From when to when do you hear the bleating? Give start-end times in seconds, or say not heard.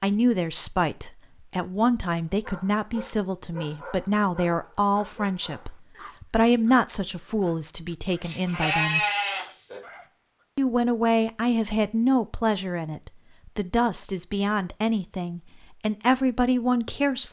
8.2-9.8.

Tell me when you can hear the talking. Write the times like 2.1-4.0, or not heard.
0.0-9.0, 10.6-17.2.